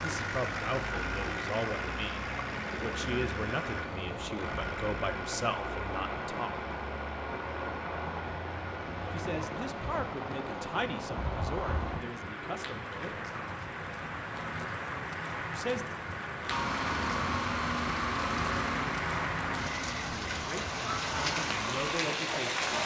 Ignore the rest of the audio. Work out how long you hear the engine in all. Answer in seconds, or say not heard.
19 s.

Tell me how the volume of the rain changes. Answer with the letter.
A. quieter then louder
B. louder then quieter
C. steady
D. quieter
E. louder
E.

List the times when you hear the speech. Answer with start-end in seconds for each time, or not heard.
0.0-6.7, 9.1-13.1, 15.5-15.9, 20.1-22.6.